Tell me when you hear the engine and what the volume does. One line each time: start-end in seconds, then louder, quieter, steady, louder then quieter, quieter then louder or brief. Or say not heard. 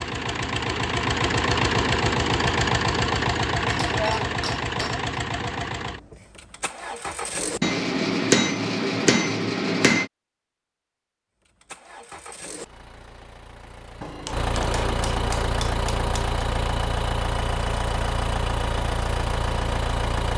0.0-7.8 quieter
11.4-20.3 louder.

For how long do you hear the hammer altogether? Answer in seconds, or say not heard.
6 s.